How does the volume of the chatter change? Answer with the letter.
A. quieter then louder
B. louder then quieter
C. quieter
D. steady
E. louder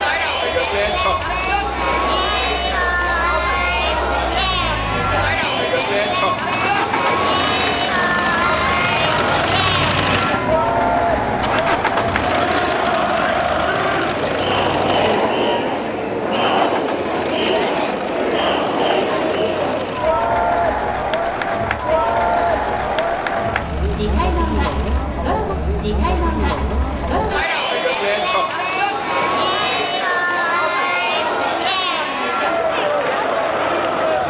D.